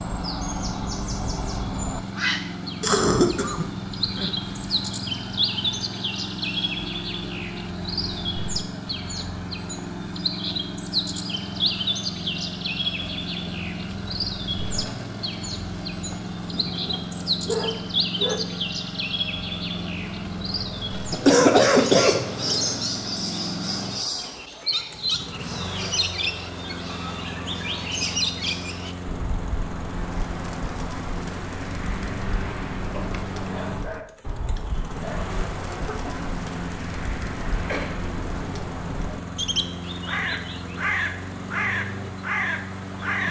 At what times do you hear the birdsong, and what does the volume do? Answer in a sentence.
You can hear the birdsong from 0.0 to 43.2 s, at a steady volume.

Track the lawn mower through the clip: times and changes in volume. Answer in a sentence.
You can hear the lawn mower from 0.0 to 43.2 s, at a steady volume.